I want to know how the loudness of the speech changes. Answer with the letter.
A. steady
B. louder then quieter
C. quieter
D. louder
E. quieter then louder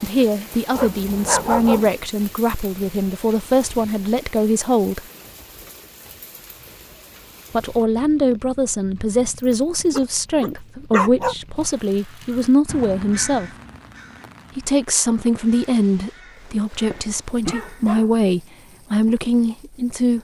A.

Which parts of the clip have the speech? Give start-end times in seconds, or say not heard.
0.0-5.0, 7.5-13.5, 14.6-20.2.